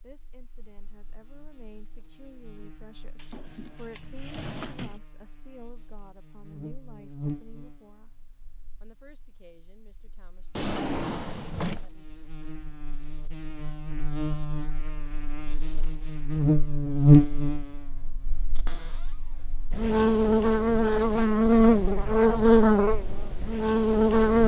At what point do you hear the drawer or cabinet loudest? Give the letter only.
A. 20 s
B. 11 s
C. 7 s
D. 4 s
B.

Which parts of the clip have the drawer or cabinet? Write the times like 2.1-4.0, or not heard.
3.1-5.0, 10.6-11.8, 18.6-19.1.